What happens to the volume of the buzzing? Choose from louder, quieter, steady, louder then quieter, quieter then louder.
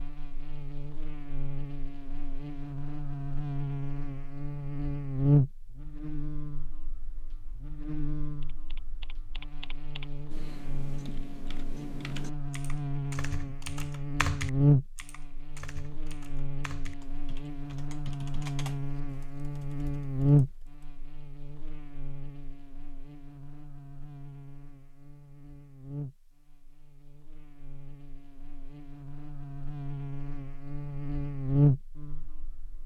quieter then louder.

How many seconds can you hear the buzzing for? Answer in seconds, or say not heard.
33 s.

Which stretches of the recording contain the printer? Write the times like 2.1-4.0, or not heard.
not heard.